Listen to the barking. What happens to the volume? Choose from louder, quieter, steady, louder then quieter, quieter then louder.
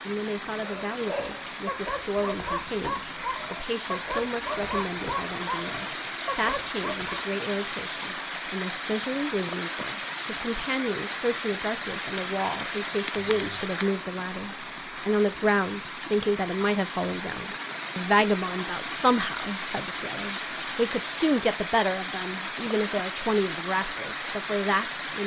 steady.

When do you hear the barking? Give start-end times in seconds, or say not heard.
0.6-7.2.